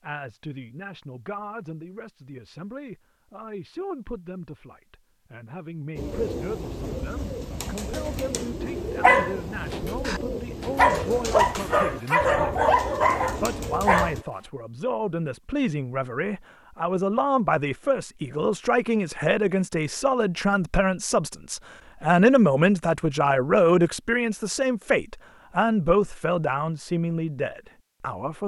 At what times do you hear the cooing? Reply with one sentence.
You can hear the cooing from 6.0 to 14.2 s.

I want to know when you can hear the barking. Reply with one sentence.
You can hear the barking from 9.0 to 14.2 s.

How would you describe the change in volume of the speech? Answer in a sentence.
The loudness of the speech goes up.